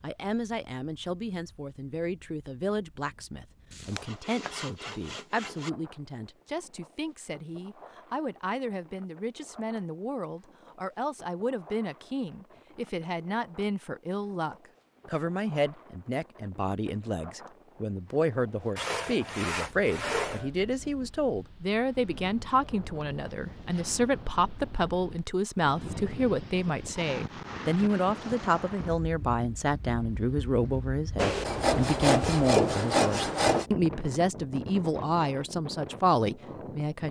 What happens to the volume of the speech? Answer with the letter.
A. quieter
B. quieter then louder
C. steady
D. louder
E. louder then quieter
D.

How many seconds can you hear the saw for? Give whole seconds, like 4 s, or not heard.
6 s.